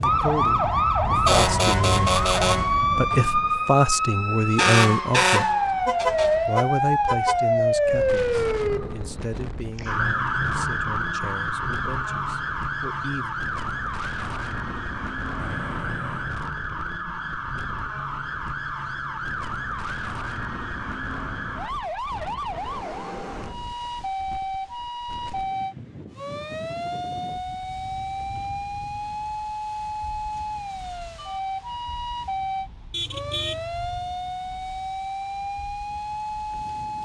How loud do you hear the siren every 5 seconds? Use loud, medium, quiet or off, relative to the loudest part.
loud, loud, medium, medium, medium, medium, medium, medium.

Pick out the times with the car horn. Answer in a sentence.
The car horn can be heard from 5.2 to 7.4 s, from 15.3 to 16.4 s and from 32.9 to 34.0 s.